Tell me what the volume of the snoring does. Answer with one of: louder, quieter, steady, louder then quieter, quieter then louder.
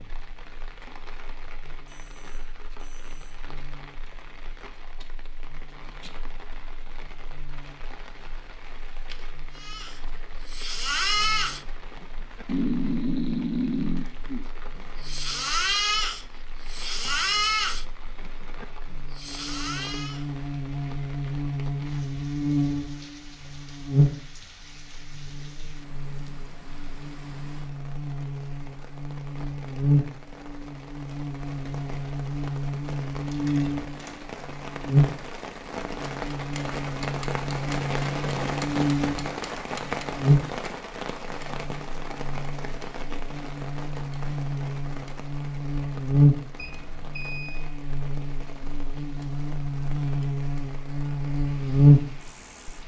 quieter.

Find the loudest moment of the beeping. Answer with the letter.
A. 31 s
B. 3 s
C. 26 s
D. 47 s
D.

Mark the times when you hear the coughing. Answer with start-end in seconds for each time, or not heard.
not heard.